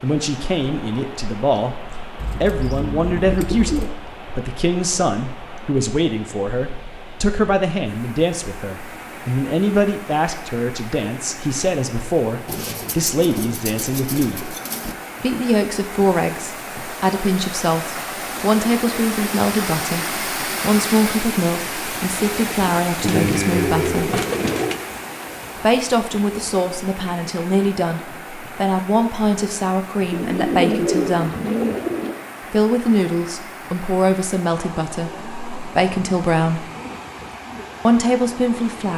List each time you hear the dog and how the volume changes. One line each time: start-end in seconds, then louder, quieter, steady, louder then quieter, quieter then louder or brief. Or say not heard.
not heard.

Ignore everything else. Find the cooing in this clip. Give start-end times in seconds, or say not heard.
2.1-4.0, 12.4-14.9, 23.0-24.8, 30.1-32.1.